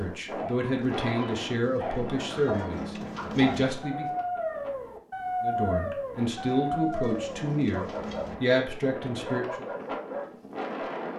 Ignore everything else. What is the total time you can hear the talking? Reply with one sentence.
You can hear the talking for 8 seconds altogether.